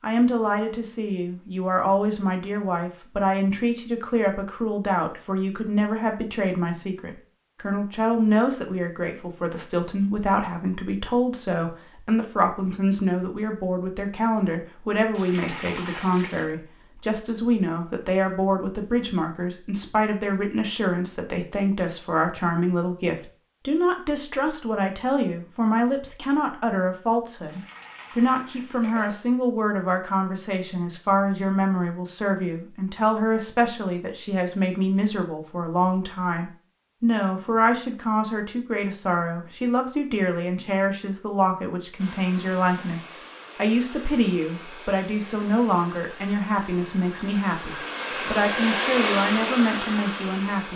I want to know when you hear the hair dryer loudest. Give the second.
49 s.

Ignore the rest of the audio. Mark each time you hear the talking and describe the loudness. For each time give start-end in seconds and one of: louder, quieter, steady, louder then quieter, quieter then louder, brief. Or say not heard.
0.0-50.7 steady.